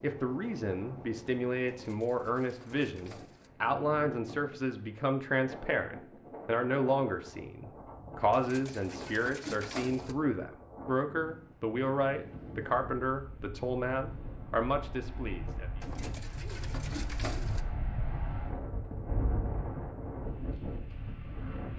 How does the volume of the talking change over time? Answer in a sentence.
The volume of the talking stays about the same.